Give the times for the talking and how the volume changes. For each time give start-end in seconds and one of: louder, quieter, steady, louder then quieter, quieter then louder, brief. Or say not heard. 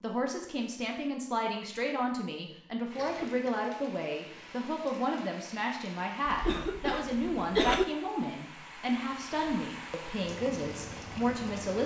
0.0-11.8 steady.